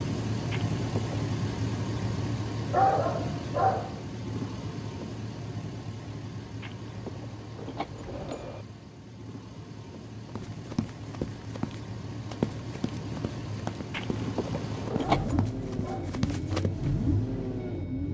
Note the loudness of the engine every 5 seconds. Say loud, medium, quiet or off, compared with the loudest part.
loud, medium, medium, loud.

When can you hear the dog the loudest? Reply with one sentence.
The volume of the dog peaks at 3 seconds.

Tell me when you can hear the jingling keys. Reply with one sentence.
The jingling keys can be heard from 0.5 to 1.2 s, from 6.6 to 8.7 s and from 13.9 to 15.3 s.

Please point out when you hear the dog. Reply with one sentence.
You can hear the dog from 2.7 to 4.0 s and from 15.0 to 16.2 s.